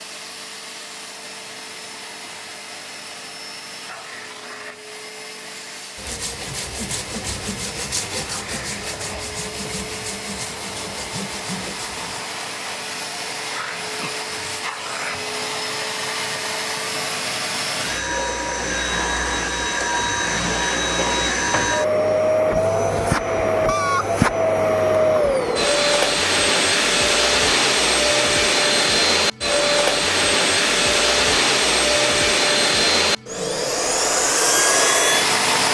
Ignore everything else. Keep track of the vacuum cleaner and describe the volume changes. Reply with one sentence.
The loudness of the vacuum cleaner goes up.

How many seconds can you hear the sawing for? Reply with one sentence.
The sawing can be heard for 6 seconds in total.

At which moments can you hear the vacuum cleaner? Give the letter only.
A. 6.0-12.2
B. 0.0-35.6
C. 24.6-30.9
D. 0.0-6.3
B.